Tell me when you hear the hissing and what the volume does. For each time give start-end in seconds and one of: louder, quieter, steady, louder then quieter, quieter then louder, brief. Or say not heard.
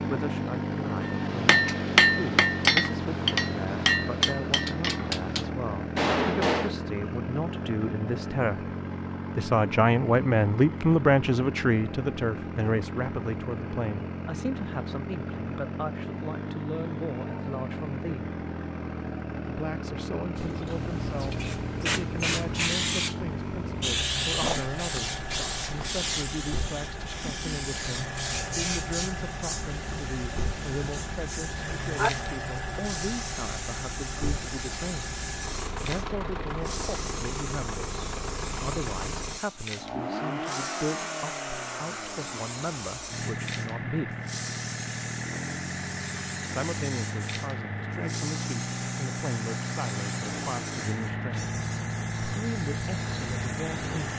20.4-54.1 quieter.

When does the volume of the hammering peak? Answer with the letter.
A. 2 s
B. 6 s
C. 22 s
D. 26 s
A.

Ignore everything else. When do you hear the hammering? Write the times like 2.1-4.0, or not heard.
1.1-6.8.